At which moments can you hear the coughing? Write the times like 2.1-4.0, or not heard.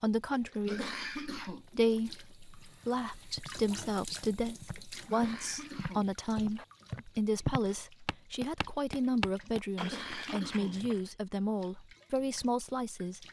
0.7-1.6, 5.0-6.7, 9.8-10.8.